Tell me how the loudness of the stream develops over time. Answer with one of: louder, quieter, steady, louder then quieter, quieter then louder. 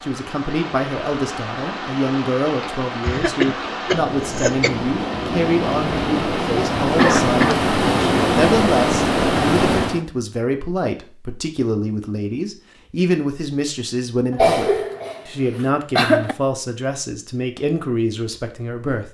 louder.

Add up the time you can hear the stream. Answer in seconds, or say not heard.
10 s.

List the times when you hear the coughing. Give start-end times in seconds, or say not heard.
3.0-4.7, 7.0-7.5, 14.3-16.4.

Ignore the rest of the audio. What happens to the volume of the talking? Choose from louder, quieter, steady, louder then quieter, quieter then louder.
steady.